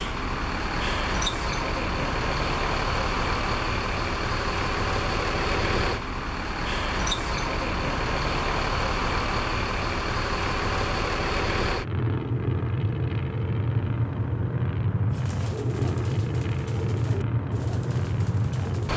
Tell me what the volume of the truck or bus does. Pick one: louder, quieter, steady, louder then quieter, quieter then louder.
steady.